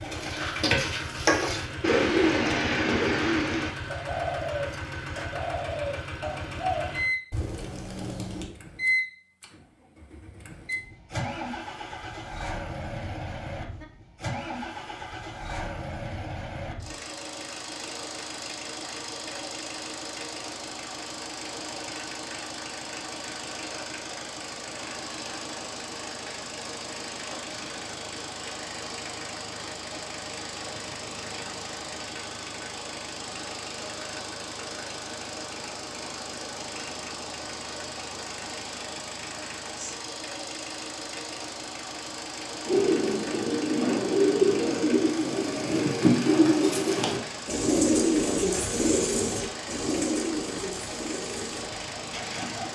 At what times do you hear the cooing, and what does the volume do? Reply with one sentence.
You can hear the cooing from 0.0 to 8.5 s, getting quieter; and from 42.6 to 52.7 s, getting quieter.